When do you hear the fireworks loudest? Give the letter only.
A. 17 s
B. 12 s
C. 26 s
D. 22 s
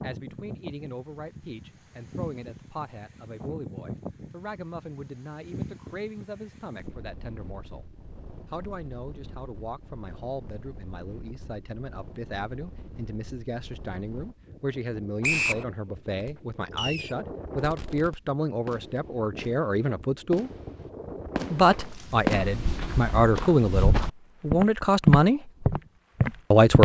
D.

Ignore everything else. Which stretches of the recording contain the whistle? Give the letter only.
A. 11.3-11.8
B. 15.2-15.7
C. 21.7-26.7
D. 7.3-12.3
B.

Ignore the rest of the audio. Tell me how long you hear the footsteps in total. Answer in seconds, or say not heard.
5 s.